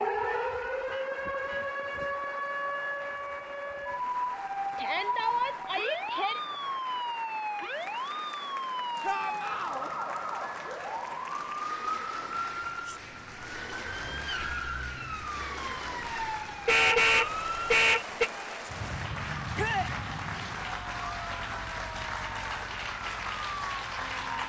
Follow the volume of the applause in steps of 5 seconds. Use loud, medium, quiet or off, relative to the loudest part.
medium, medium, medium, loud, loud.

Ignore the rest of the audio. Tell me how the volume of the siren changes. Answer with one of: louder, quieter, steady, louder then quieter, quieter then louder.
quieter.